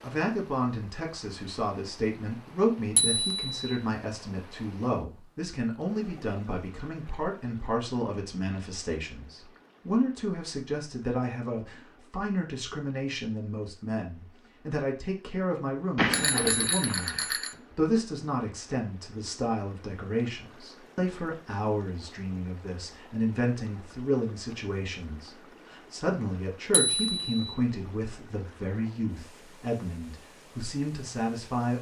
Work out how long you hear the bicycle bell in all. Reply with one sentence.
The bicycle bell can be heard for 3 seconds in total.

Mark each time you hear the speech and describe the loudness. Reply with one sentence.
The speech can be heard from 0.0 to 31.7 s, at a steady volume.